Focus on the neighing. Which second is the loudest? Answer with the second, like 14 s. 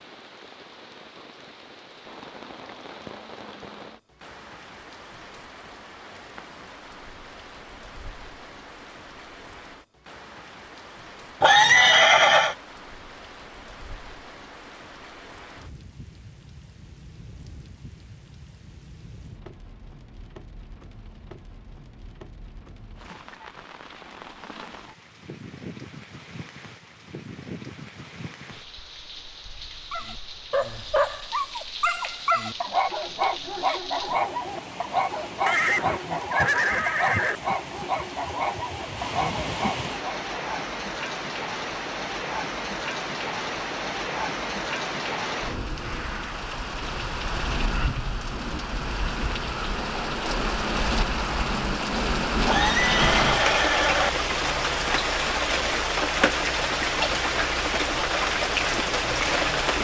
12 s.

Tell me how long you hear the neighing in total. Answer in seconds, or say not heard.
5 s.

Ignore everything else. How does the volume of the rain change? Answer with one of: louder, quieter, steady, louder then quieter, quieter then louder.
louder.